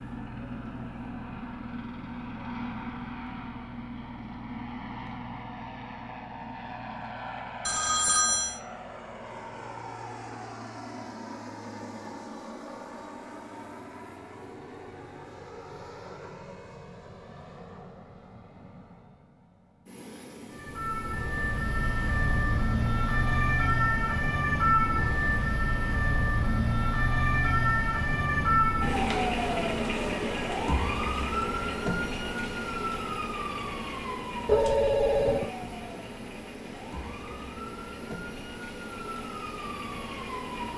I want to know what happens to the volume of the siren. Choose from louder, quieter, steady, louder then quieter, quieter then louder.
quieter.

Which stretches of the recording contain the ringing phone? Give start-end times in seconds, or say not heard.
7.7-8.6, 34.5-35.5.